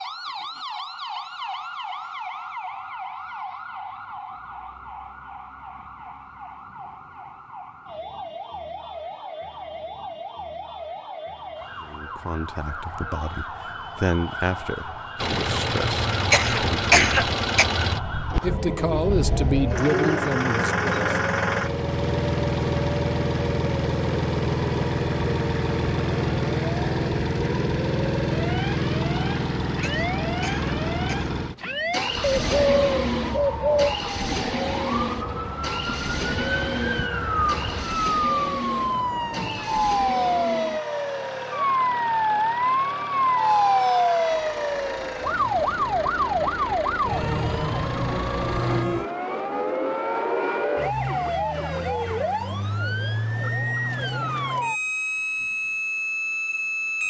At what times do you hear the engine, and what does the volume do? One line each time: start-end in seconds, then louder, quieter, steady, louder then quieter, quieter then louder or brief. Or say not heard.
15.2-48.9 quieter.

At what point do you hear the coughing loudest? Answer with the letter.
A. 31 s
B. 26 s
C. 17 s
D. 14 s
C.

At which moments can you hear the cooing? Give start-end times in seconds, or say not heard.
19.7-21.2, 32.2-34.0.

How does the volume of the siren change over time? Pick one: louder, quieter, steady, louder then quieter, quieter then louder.
louder.